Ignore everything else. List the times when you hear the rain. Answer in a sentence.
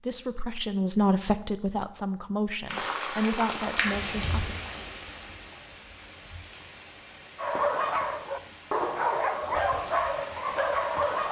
The rain can be heard from 2.6 to 11.2 s.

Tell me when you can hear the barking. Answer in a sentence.
You can hear the barking from 7.3 to 11.2 s.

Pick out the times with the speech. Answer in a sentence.
The speech can be heard from 0.0 to 4.5 s.